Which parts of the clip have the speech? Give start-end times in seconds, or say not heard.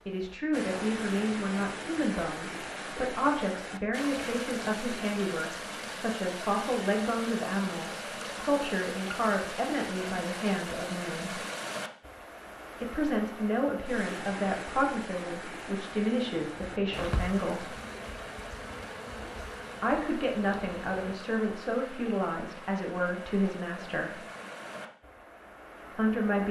0.1-11.3, 12.8-17.7, 19.8-24.1, 25.9-26.4.